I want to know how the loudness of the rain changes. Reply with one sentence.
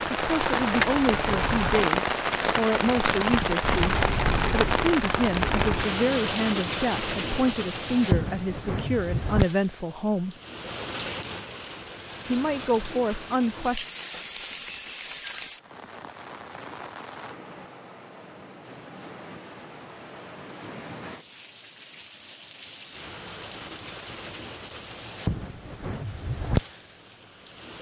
The volume of the rain goes down, then up.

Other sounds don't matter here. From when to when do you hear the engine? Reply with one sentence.
You can hear the engine from 0.0 to 1.9 s and from 3.6 to 5.9 s.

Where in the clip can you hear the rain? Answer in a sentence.
The rain can be heard from 0.0 to 27.7 s.